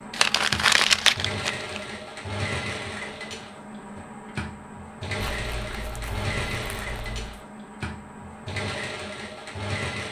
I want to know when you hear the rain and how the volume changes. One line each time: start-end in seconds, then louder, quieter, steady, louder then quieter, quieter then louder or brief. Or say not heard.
not heard.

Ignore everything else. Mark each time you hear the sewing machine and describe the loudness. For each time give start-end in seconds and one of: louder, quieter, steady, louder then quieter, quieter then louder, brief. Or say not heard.
0.0-10.0 steady.